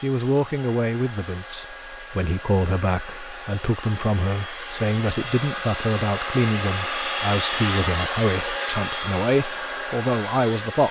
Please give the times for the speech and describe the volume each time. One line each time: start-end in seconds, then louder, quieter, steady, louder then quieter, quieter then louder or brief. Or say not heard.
0.0-10.8 steady.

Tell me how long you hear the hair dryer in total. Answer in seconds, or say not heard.
11 s.